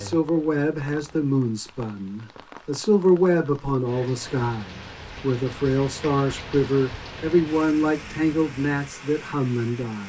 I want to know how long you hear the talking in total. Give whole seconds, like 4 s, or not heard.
10 s.